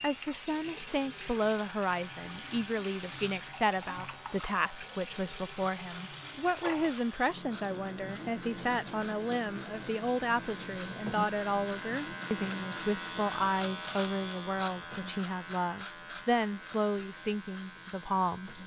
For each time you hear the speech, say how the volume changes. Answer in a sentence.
The speech can be heard from 0.0 to 18.6 s, at a steady volume.